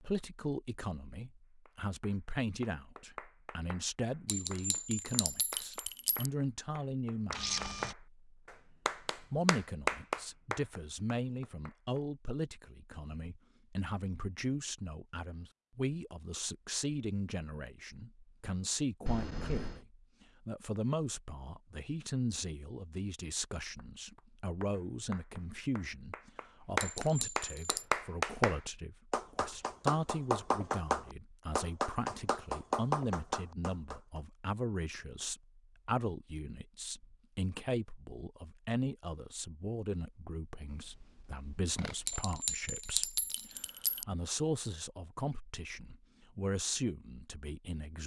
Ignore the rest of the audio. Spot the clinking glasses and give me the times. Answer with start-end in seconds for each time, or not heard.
4.2-6.3, 26.8-27.9, 42.0-44.0.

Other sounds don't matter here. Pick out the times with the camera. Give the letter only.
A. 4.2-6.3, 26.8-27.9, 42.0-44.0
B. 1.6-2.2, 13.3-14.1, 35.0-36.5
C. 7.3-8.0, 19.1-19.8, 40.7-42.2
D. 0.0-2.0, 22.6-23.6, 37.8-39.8
C.